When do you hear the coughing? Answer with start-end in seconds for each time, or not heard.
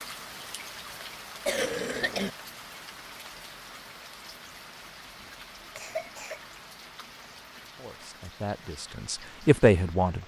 1.4-2.3, 5.8-6.4.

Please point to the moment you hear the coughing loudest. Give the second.
2 s.